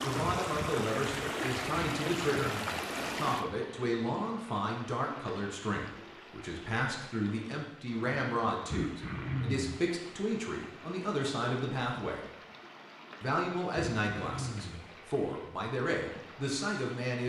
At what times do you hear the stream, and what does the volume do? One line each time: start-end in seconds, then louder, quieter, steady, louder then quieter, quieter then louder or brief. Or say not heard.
0.0-17.2 quieter.